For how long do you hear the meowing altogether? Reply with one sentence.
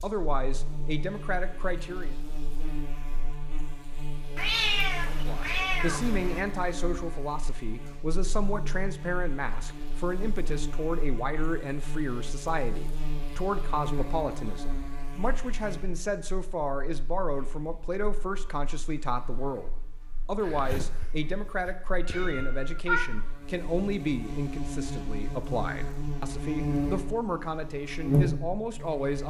You can hear the meowing for 5 seconds altogether.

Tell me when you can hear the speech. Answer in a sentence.
You can hear the speech from 0.0 to 2.1 s and from 5.1 to 29.2 s.